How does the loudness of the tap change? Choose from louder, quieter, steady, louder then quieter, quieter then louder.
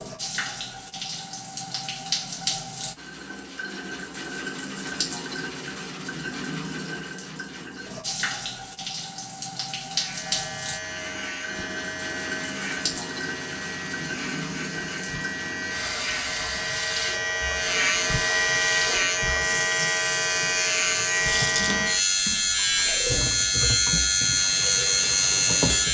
steady.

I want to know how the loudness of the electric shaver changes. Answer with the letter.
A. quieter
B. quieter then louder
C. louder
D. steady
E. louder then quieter
C.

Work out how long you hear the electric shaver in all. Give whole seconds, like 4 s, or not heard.
16 s.